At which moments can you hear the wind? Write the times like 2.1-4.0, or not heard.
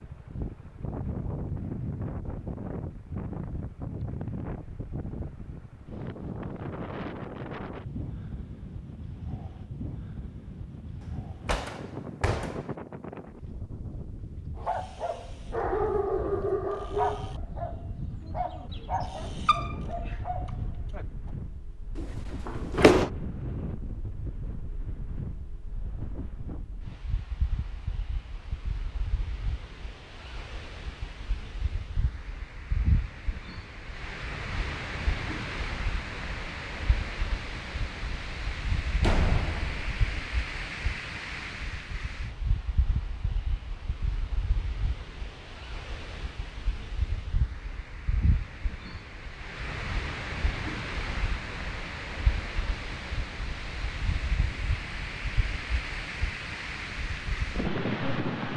0.0-58.5.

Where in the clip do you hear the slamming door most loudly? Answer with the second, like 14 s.
23 s.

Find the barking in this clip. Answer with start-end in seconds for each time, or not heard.
14.6-21.3.